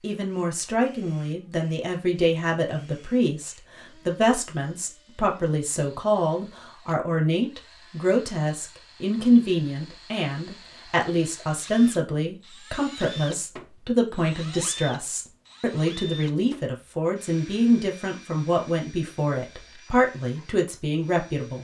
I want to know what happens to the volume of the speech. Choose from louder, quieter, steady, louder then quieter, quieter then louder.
steady.